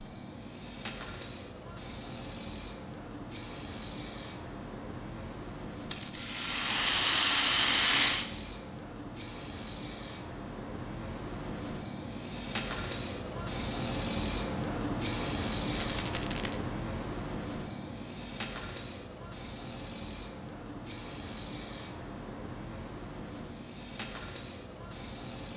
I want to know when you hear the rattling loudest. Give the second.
8 s.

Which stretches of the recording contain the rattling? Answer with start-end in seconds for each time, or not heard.
5.9-8.2, 15.7-16.6.